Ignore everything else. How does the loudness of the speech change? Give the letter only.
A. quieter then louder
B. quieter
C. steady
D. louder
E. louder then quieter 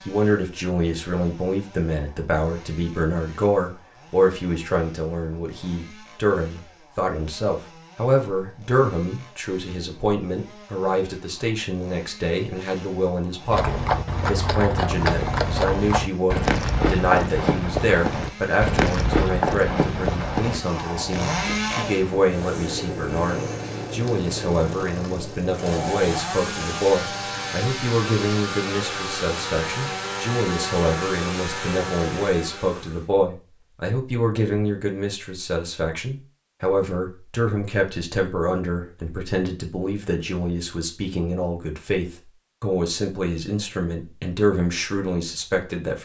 C.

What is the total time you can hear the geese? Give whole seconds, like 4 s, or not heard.
not heard.